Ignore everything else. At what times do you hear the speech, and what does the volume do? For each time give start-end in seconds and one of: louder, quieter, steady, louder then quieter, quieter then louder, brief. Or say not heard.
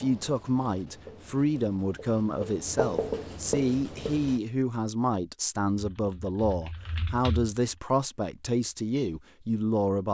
0.0-10.0 steady.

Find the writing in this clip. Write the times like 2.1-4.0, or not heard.
0.0-4.4.